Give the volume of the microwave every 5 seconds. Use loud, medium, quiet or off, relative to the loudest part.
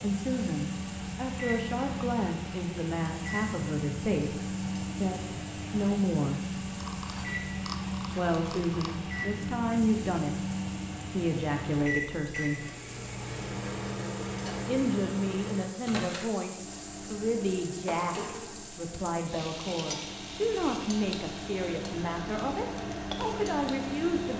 loud, loud, loud, medium, loud.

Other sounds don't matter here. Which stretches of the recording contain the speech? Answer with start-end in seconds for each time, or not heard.
0.0-6.5, 8.2-12.7, 14.7-24.3.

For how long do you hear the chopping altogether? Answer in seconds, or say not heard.
not heard.